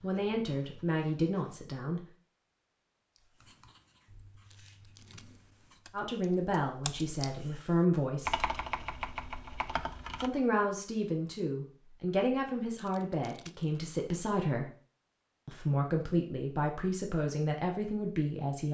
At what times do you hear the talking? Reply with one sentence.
The talking can be heard from 0.0 to 2.0 s, from 5.9 to 8.3 s, from 10.2 to 14.7 s and from 15.4 to 18.6 s.